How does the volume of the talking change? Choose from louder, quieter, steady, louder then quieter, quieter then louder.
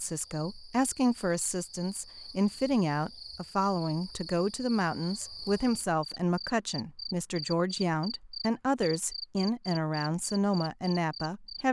steady.